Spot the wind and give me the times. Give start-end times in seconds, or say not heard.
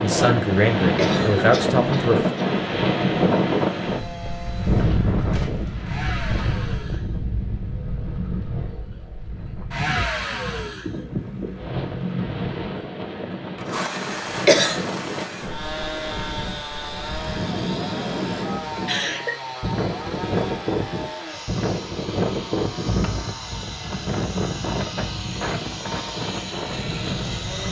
0.0-27.6.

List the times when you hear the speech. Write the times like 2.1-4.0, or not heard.
0.0-2.4.